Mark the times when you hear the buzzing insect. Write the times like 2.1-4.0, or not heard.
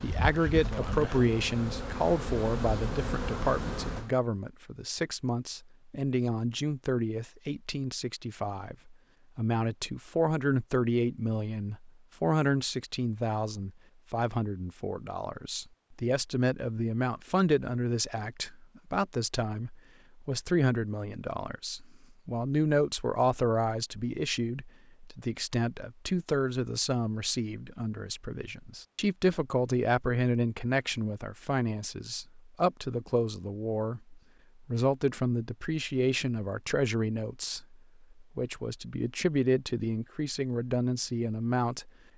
0.0-4.1.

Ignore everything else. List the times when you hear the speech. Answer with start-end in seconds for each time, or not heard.
0.0-41.9.